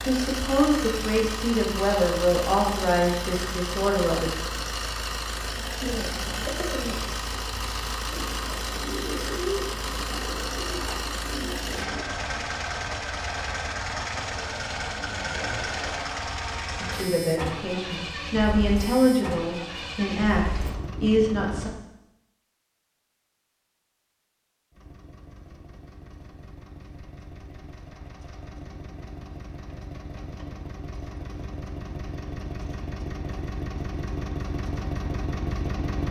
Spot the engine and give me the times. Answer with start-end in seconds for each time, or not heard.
0.0-21.8, 24.7-36.0.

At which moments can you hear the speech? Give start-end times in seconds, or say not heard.
0.0-4.3, 16.8-21.7.